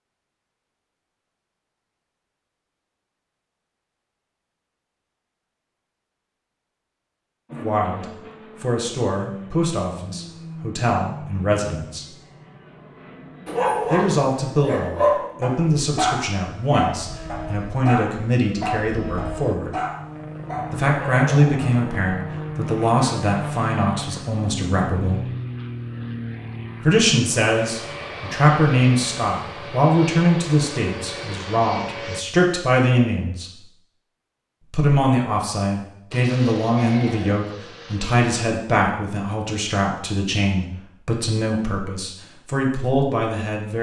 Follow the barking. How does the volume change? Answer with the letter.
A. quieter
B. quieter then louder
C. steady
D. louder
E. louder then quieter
A.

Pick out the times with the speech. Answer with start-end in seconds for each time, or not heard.
7.5-12.1, 13.8-19.8, 20.7-25.2, 26.8-33.6, 34.7-43.7.